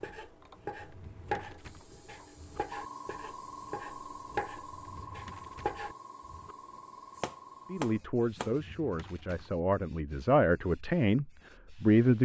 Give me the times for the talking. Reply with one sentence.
You can hear the talking from 7.7 to 12.2 s.